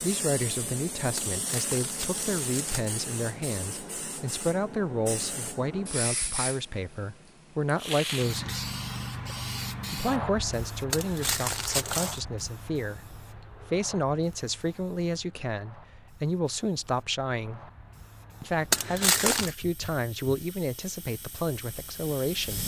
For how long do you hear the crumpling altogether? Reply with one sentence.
You can hear the crumpling for 4 seconds altogether.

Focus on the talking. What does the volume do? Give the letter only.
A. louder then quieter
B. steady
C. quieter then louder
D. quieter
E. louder
B.